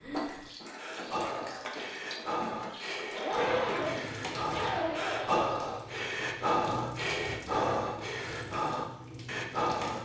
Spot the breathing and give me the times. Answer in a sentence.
You can hear the breathing from 0.0 to 10.0 s.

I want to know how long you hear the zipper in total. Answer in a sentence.
The zipper can be heard for 2 seconds in total.